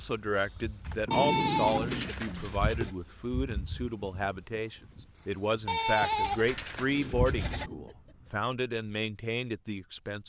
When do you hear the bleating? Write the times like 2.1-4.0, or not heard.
1.1-3.0, 5.7-7.7.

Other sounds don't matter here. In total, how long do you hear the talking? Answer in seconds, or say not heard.
10 s.